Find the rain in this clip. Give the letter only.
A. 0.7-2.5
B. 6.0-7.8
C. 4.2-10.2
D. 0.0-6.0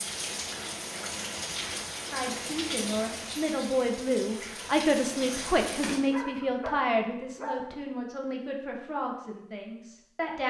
D.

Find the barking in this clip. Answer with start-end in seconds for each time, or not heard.
6.0-7.8.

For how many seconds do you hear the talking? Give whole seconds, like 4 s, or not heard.
8 s.